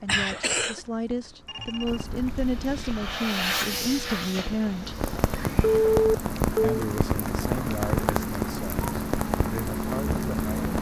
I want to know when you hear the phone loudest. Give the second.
6 s.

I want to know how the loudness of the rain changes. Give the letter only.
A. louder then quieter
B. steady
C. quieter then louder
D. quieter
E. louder
E.